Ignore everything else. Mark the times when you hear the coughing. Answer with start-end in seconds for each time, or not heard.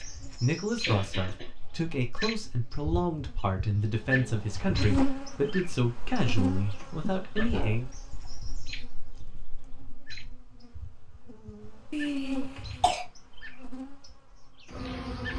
0.8-1.5, 7.0-8.3, 11.9-13.1.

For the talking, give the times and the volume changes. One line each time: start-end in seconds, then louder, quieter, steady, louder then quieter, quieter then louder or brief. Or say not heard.
0.0-7.9 steady.